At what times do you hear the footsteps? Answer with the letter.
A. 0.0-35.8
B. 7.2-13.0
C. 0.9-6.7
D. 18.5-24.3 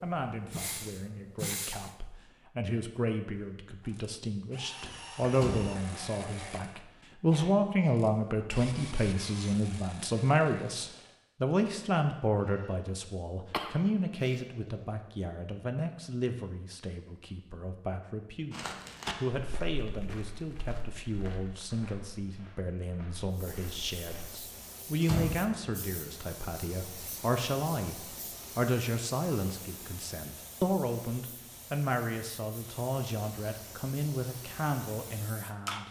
D.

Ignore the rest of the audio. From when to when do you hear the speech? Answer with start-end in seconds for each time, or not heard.
0.0-35.8.